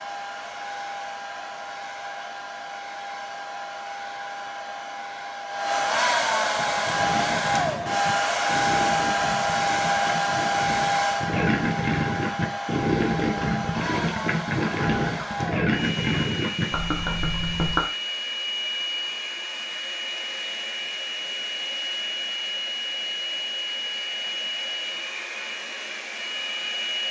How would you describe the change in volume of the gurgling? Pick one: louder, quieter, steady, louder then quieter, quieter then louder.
louder.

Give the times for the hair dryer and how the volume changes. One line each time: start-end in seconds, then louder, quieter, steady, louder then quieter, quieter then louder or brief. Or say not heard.
0.0-27.0 louder then quieter.